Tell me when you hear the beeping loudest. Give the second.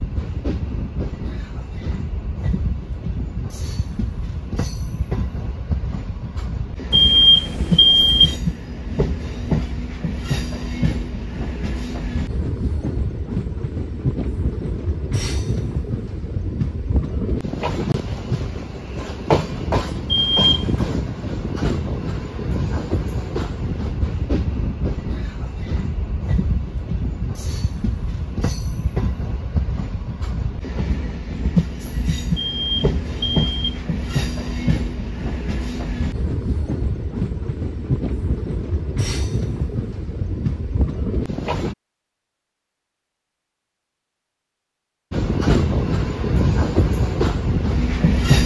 7 s.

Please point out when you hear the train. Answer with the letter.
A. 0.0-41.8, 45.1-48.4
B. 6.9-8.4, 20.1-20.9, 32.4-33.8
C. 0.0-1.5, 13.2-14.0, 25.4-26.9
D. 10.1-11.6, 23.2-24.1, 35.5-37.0
A.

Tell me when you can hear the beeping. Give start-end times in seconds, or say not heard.
6.9-8.4, 20.1-20.9, 32.4-33.8.